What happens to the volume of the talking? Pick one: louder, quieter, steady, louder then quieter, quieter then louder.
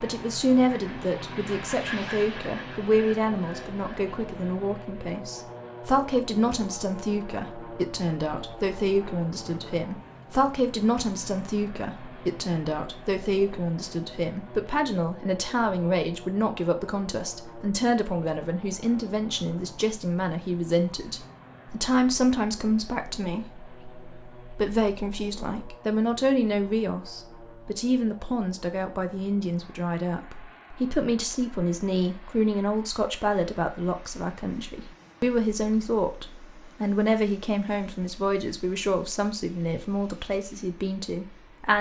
steady.